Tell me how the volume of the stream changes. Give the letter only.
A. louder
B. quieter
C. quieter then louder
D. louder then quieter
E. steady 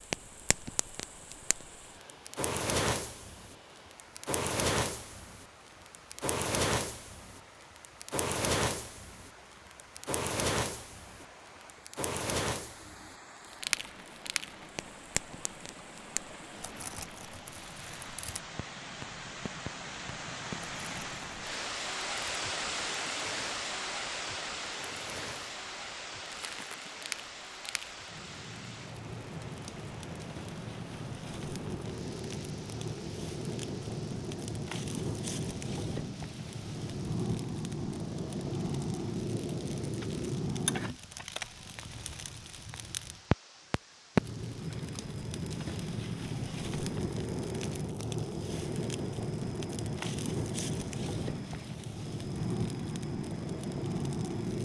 D.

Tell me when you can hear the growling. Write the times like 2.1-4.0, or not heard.
not heard.